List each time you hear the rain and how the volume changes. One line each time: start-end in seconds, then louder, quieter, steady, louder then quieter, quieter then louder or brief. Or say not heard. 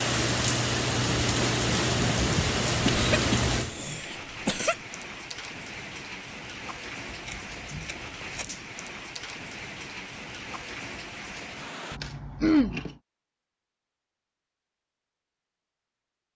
0.0-12.0 quieter.